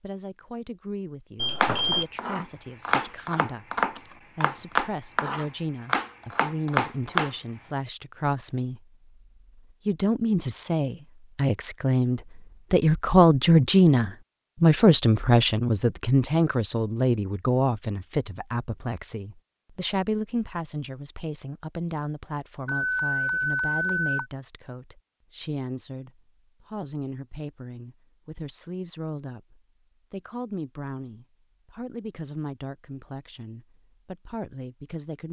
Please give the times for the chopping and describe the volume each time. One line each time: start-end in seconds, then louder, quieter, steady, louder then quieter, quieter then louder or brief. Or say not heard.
1.6-7.3 steady.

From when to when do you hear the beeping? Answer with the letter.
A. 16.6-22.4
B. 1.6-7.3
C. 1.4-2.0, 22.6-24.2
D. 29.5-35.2
C.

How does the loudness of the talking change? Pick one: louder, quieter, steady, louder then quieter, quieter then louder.
louder then quieter.